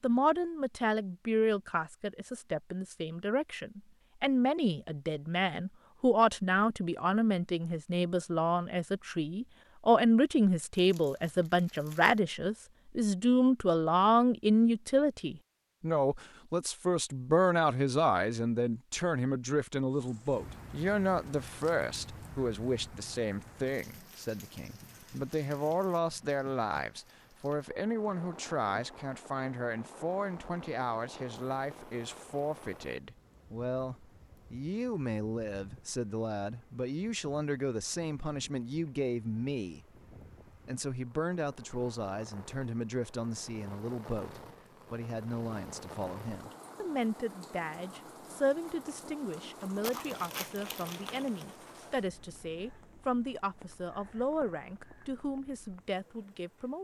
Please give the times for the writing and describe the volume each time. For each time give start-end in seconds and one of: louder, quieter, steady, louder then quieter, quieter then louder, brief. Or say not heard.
not heard.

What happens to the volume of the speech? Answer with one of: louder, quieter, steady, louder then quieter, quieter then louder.
quieter.